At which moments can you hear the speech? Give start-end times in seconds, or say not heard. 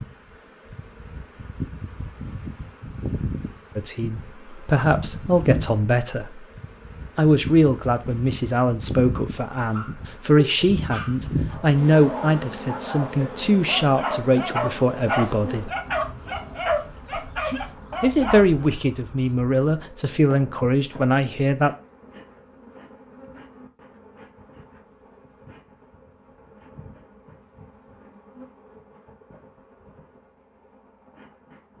3.8-6.5, 7.2-15.7, 18.0-21.7.